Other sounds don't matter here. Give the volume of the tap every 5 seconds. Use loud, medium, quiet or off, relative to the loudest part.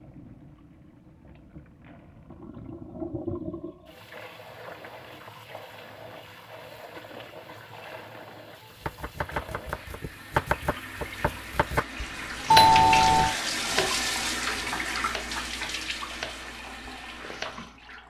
medium, quiet, loud, medium.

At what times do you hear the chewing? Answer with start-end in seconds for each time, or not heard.
not heard.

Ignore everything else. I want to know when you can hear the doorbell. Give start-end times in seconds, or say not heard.
12.5-13.3.